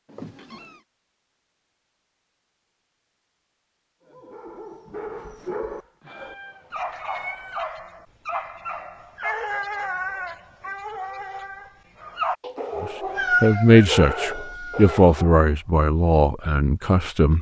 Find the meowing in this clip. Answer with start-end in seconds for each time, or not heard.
0.1-0.8, 6.0-7.7, 12.4-13.8.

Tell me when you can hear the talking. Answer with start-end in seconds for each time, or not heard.
12.8-17.3.